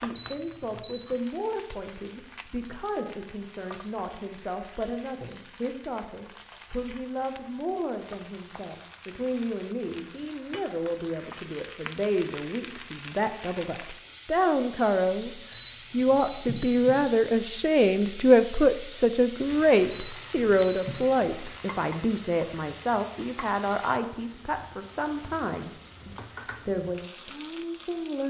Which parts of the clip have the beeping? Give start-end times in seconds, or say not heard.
0.1-1.1, 15.5-17.1, 19.9-21.1.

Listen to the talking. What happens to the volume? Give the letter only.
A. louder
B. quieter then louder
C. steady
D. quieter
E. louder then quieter
E.